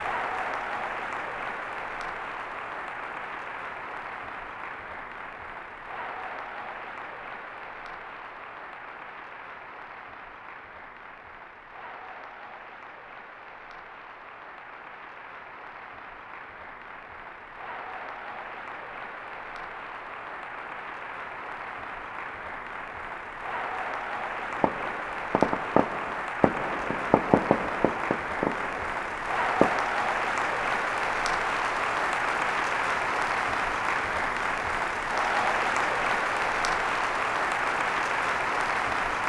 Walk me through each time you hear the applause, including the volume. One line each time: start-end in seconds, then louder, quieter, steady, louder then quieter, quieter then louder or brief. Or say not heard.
0.0-39.2 quieter then louder.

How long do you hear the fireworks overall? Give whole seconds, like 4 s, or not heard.
5 s.